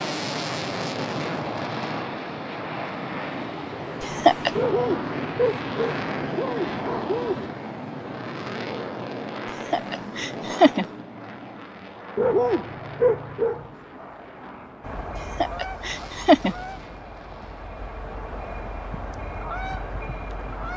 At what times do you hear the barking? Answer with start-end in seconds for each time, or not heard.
4.5-7.5, 12.2-13.7.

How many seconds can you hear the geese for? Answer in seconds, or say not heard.
6 s.